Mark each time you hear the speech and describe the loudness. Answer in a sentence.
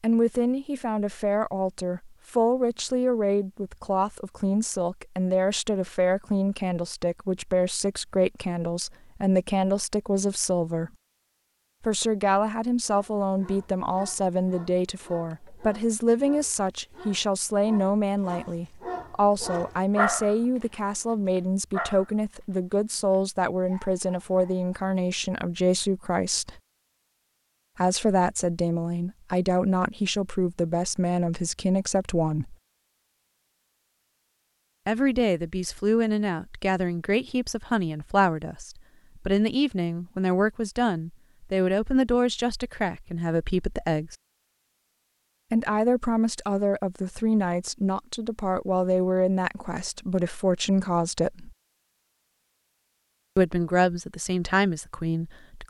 The speech can be heard from 0.0 to 10.9 s, at a steady volume; from 11.8 to 26.6 s, at a steady volume; from 27.8 to 32.5 s, at a steady volume; from 34.9 to 44.1 s, at a steady volume; from 45.5 to 51.5 s, at a steady volume; and briefly from 53.4 to 55.6 s.